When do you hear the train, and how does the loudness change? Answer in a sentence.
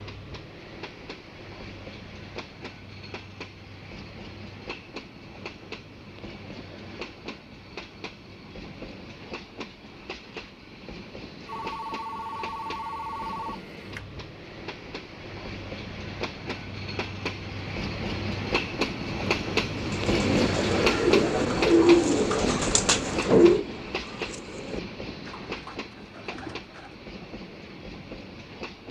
The train can be heard from 0.0 to 28.8 s, getting louder then quieter.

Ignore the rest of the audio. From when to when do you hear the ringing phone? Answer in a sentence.
The ringing phone can be heard from 11.4 to 14.1 s.